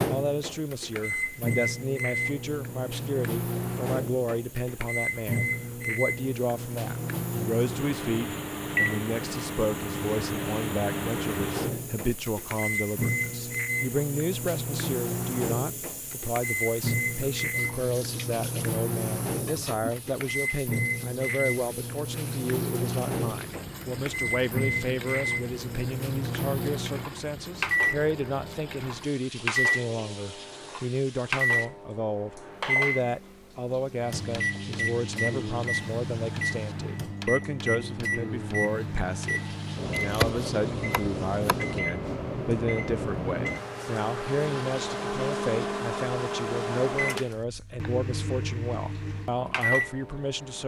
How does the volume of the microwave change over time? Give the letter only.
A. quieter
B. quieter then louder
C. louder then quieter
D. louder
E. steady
E.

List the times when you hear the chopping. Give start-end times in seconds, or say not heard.
40.0-41.6.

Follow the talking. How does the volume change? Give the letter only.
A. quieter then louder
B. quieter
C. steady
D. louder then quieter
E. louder
C.